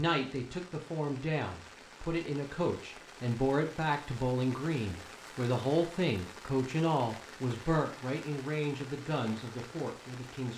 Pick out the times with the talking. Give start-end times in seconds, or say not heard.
0.0-10.5.